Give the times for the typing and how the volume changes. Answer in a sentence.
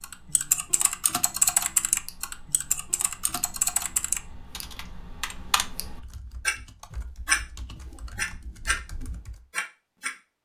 You can hear the typing from 0.0 to 9.4 s, getting quieter.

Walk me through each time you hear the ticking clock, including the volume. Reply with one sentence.
You can hear the ticking clock from 0.0 to 10.2 s, getting louder then quieter.